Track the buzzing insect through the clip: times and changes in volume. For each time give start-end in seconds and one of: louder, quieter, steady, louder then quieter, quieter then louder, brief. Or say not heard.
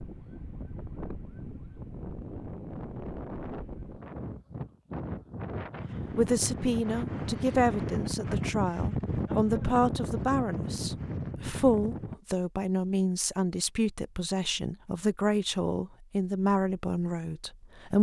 not heard.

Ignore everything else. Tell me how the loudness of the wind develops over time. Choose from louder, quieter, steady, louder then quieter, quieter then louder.
louder.